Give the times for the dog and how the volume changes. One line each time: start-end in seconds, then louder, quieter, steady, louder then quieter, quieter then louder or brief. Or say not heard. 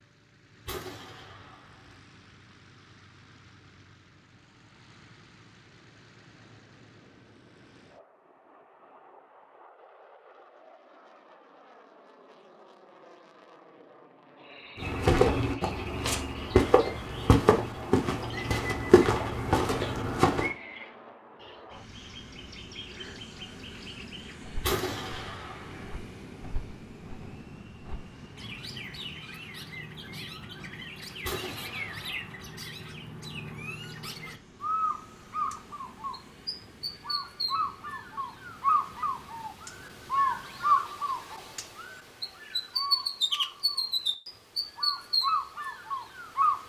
not heard.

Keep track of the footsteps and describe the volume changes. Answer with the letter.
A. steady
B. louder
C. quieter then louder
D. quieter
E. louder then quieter
A.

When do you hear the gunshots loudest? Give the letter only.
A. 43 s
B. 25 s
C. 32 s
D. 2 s
B.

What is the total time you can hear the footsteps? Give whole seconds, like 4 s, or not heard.
6 s.